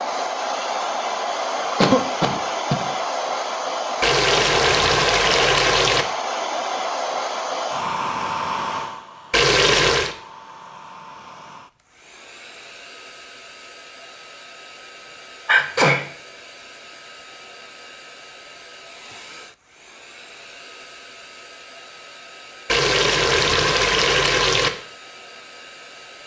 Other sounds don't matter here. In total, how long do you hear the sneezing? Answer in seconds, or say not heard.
2 s.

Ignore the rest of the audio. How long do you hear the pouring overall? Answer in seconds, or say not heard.
5 s.